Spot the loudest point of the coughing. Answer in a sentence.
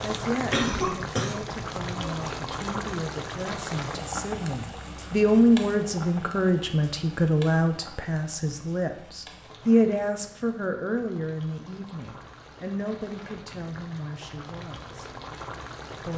The loudest moment of the coughing is at 1 second.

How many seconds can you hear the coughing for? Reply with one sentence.
The coughing can be heard for 2 seconds in total.